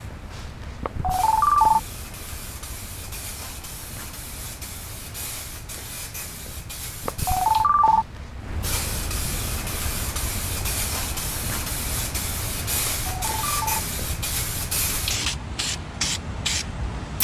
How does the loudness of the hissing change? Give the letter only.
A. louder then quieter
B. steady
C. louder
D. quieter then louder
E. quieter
C.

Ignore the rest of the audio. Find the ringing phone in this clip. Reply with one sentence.
You can hear the ringing phone from 0.8 to 1.8 s, from 7.0 to 8.1 s and from 12.8 to 13.8 s.